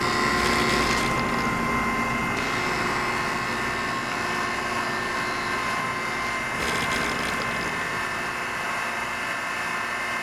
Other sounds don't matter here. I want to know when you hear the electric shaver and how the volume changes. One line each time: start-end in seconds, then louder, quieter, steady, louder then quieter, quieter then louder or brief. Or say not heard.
0.0-10.1 quieter.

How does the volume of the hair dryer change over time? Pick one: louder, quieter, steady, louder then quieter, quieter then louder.
steady.